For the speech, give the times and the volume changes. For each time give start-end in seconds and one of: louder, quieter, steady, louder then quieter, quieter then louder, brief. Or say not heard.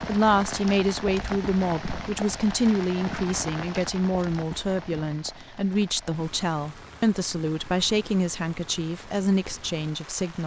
0.1-10.4 steady.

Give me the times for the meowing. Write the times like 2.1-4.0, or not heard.
not heard.